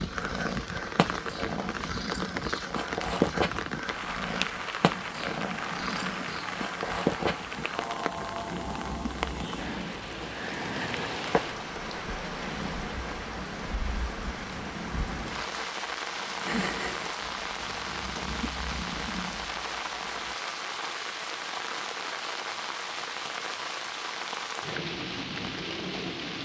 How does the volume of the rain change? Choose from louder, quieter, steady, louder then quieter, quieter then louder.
steady.